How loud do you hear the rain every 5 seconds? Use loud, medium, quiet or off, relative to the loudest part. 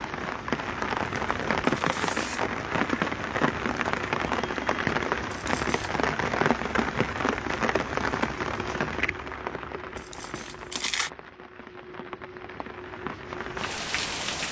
loud, loud, medium.